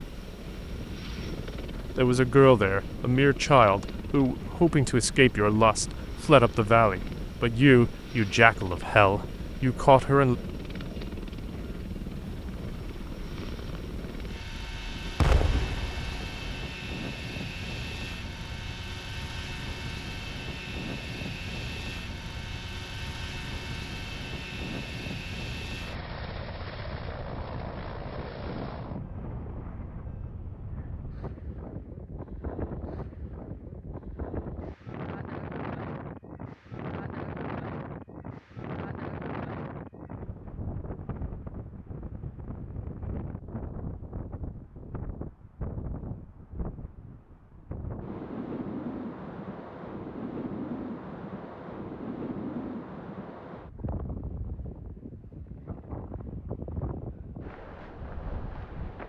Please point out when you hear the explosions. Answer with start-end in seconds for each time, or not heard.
15.2-16.6.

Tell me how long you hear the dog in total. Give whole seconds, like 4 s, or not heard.
not heard.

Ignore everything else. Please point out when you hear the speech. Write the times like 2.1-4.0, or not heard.
1.9-10.3.